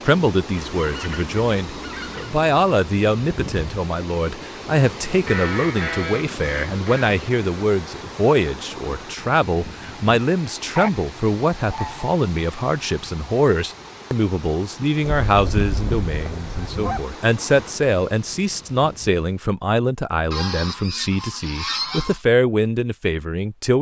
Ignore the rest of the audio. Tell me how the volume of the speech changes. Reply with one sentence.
The volume of the speech stays about the same.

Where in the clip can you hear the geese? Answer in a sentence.
The geese can be heard from 0.8 to 2.4 s, from 5.2 to 7.1 s, from 10.8 to 12.1 s, from 15.0 to 17.0 s and from 20.3 to 22.2 s.